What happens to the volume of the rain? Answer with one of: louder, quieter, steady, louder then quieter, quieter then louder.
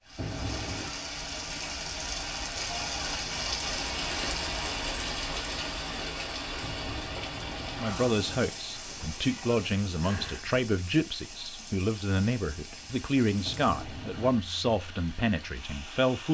quieter.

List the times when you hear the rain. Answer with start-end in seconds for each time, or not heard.
0.0-16.2.